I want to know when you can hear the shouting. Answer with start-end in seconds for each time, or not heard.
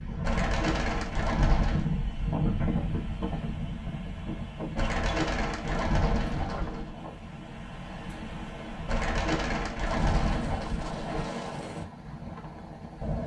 not heard.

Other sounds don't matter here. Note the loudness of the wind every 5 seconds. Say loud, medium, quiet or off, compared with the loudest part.
loud, medium, loud.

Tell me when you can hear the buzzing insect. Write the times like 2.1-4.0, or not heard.
not heard.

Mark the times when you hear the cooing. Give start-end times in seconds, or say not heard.
0.2-1.9, 4.8-7.0, 8.8-11.2.